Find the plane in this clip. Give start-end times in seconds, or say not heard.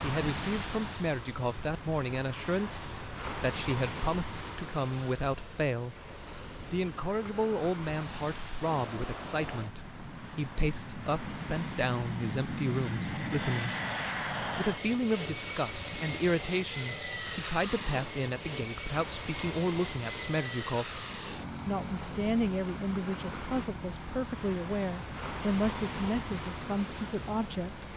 8.6-27.9.